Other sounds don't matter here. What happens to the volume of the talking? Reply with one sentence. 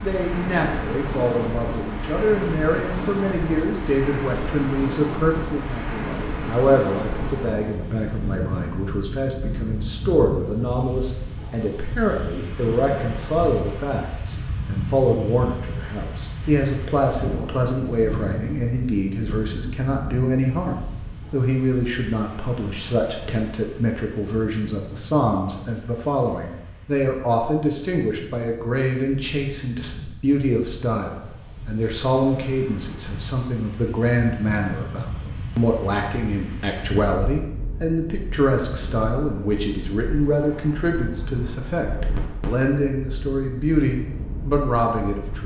The loudness of the talking stays about the same.